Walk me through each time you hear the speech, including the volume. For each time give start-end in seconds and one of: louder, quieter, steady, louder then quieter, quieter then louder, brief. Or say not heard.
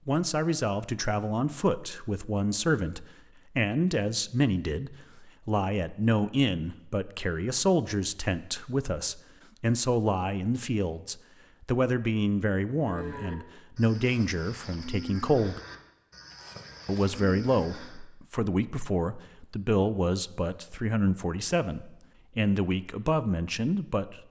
0.1-15.6 steady
16.9-24.2 steady.